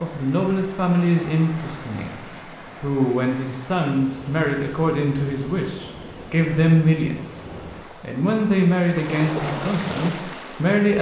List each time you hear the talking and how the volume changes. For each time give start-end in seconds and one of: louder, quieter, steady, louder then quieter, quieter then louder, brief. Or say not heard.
0.0-10.9 steady.